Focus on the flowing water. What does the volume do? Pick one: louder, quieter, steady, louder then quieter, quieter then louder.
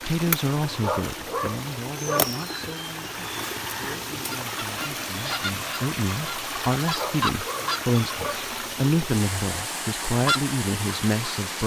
steady.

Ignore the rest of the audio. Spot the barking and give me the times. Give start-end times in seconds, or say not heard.
0.8-2.4, 7.0-8.5.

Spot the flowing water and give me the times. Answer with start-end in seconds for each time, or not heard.
0.0-11.6.